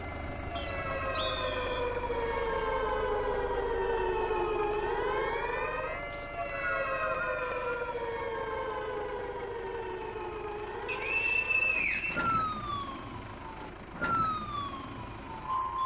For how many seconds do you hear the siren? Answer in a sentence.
The siren can be heard for 16 seconds in total.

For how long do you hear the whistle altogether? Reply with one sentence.
The whistle can be heard for 5 seconds in total.